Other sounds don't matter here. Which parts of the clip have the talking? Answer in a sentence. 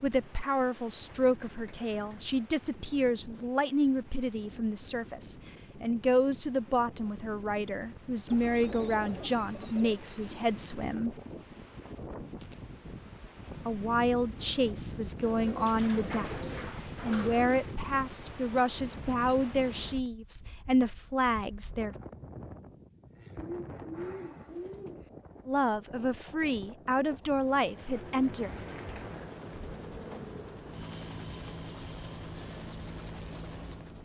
The talking can be heard from 0.0 to 11.2 s, from 13.7 to 21.9 s and from 25.4 to 28.5 s.